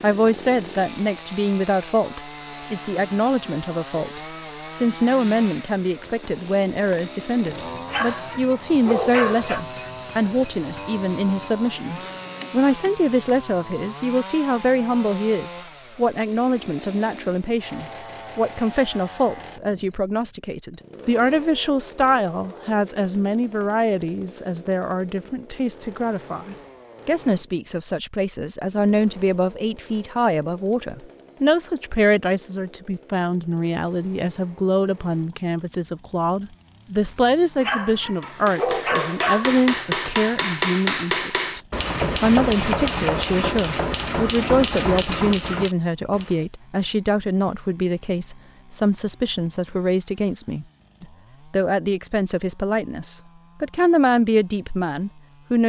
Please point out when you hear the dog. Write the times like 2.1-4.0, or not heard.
7.8-9.6, 37.6-39.6.